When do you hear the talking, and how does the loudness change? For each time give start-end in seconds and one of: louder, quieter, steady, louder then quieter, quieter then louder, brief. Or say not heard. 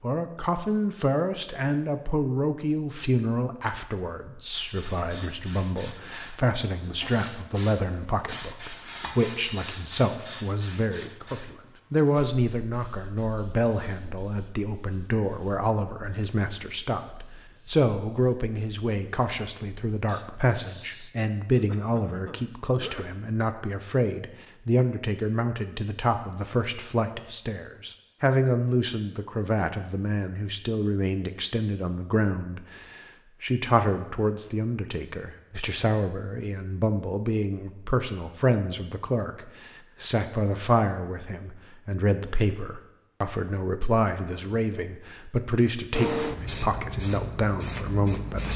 0.0-48.5 steady.